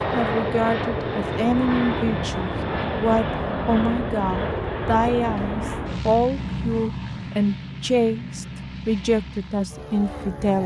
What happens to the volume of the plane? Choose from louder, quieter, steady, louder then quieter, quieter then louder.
quieter.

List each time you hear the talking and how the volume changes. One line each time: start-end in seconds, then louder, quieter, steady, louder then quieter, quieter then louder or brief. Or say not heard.
0.1-10.6 steady.